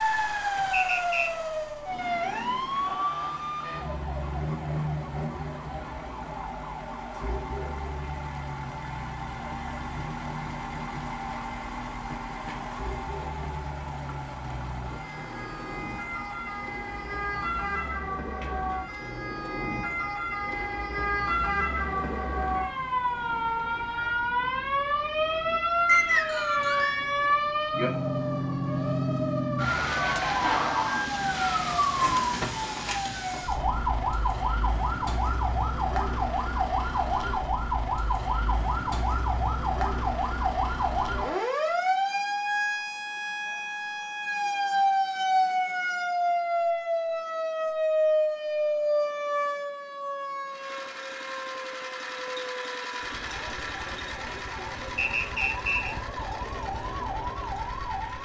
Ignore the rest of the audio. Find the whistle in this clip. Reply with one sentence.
You can hear the whistle from 0.7 to 1.3 s, from 25.9 to 27.0 s and from 55.0 to 56.0 s.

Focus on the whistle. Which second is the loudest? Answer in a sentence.
The volume of the whistle peaks at 26 seconds.